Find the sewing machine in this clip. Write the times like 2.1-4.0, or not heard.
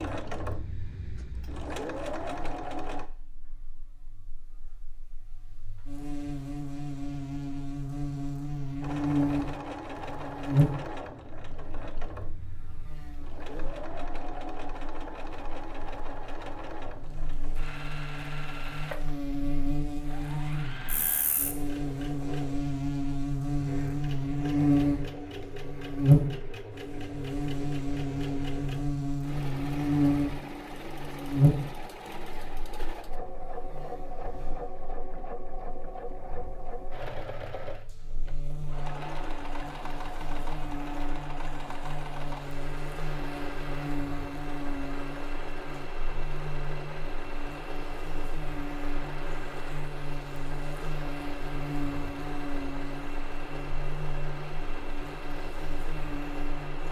0.0-3.1, 8.8-56.8.